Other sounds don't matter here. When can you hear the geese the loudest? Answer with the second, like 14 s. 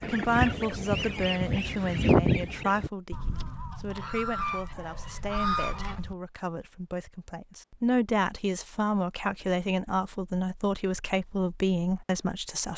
2 s.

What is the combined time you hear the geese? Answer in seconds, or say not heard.
6 s.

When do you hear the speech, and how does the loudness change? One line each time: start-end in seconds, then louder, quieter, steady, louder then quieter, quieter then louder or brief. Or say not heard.
0.0-12.7 quieter then louder.